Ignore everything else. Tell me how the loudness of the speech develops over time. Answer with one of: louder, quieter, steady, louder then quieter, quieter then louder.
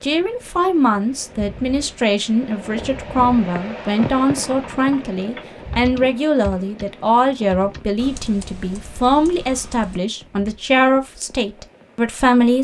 steady.